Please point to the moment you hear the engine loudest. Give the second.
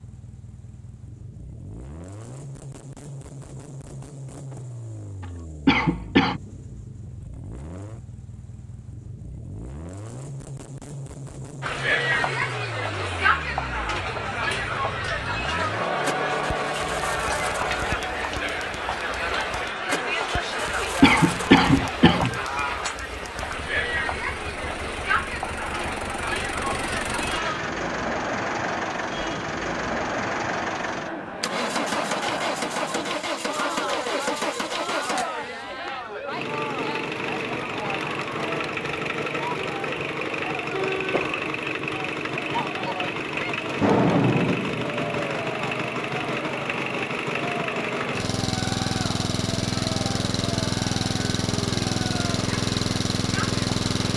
44 s.